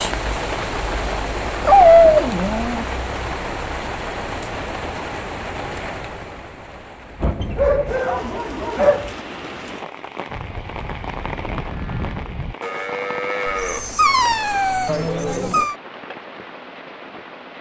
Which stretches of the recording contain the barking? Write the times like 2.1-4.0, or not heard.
1.6-2.9, 7.5-9.1, 13.4-15.8.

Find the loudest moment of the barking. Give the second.
2 s.